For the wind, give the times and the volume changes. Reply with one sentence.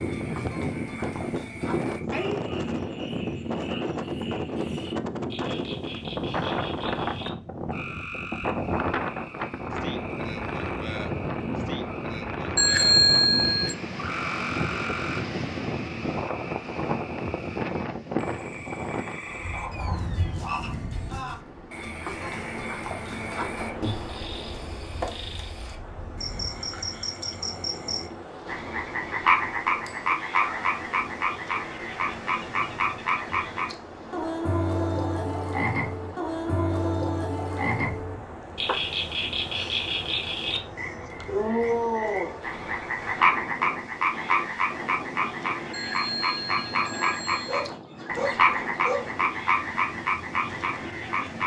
You can hear the wind from 0.0 to 51.4 s, getting quieter.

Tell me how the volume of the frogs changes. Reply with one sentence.
The loudness of the frogs goes up.